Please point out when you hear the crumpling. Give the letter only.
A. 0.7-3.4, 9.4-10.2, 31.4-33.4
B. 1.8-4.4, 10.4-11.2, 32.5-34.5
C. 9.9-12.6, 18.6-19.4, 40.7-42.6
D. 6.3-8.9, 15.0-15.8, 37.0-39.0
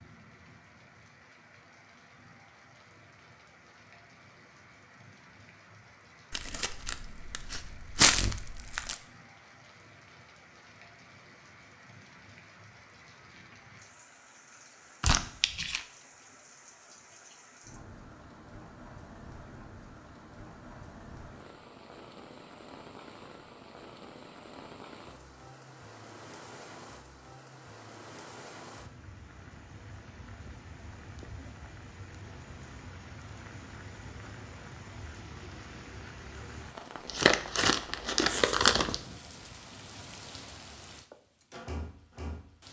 D.